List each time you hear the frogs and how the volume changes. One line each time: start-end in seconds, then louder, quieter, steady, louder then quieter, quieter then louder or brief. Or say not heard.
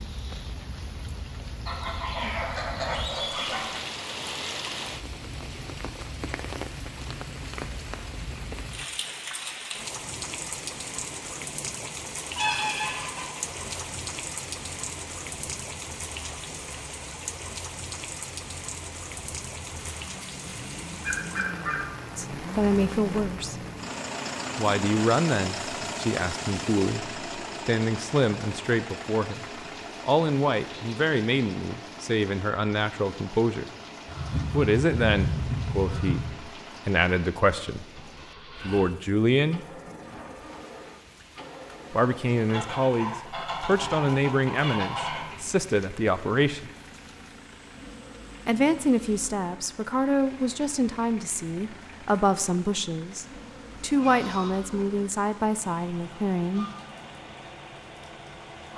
not heard.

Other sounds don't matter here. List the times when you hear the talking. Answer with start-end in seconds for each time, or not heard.
22.1-23.6, 24.6-33.7, 34.5-39.6, 41.9-46.7, 48.5-56.7.